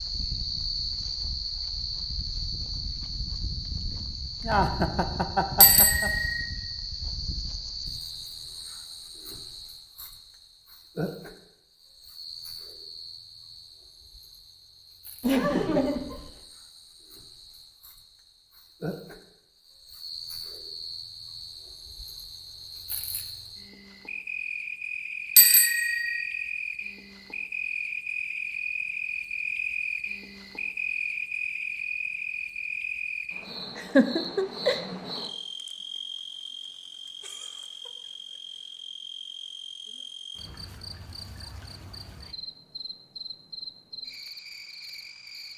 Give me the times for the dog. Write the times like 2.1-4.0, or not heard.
not heard.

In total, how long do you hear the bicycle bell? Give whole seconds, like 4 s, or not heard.
2 s.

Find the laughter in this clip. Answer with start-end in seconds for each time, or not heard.
4.4-6.1, 15.2-16.3, 33.8-34.8.